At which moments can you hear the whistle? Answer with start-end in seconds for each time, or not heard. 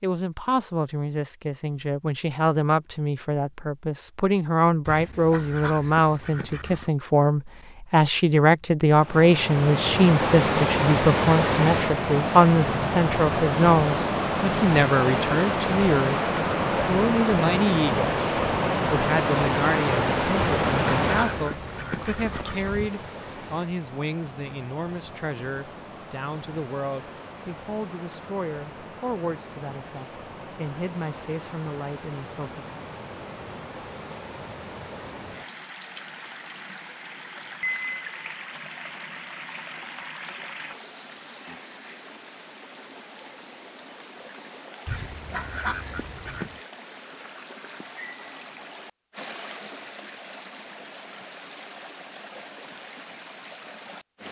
not heard.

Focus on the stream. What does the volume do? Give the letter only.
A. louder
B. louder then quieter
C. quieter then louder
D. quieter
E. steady
D.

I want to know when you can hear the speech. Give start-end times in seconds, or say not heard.
0.0-16.2, 16.9-18.1, 18.9-32.8.